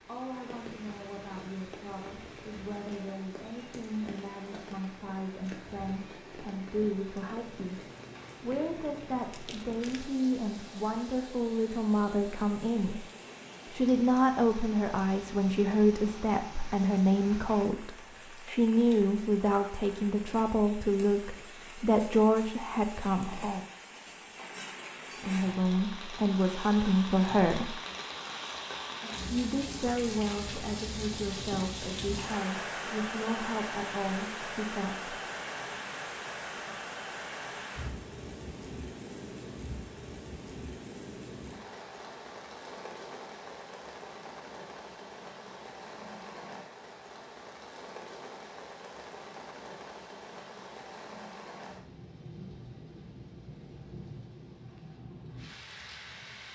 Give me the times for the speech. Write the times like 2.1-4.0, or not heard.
0.0-13.1, 13.7-23.6, 25.2-27.8, 29.2-35.1.